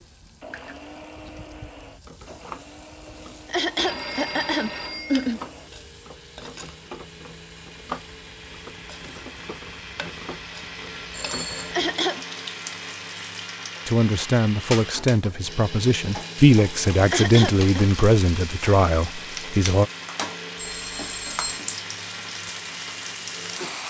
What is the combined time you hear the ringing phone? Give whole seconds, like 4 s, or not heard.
3 s.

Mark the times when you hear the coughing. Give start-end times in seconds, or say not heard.
3.5-5.4, 11.7-12.2, 17.1-17.8.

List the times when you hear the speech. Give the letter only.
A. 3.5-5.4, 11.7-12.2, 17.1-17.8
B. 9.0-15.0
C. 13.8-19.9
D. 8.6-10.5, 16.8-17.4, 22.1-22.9
C.